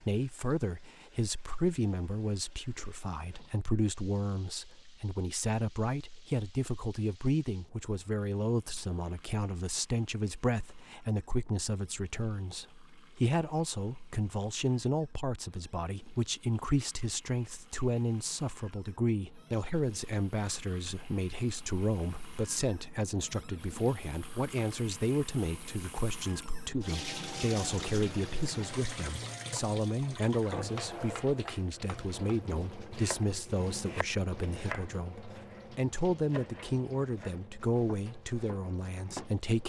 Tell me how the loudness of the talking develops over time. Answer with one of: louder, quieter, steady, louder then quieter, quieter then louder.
steady.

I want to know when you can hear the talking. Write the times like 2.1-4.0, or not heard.
0.0-39.6.